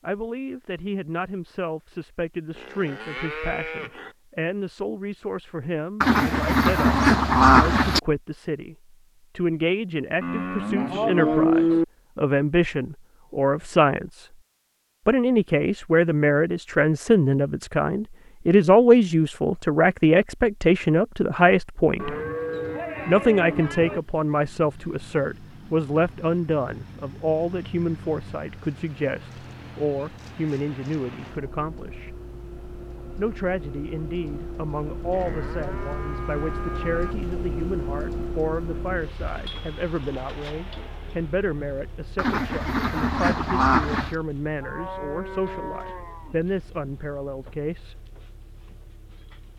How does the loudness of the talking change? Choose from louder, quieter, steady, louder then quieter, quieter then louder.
louder then quieter.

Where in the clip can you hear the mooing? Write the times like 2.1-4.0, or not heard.
2.5-4.2, 10.2-11.8, 21.9-24.0, 35.1-37.1, 44.6-46.4.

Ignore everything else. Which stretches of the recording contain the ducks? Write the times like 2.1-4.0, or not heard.
6.0-8.0, 42.1-44.1.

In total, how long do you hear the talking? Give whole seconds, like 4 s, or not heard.
45 s.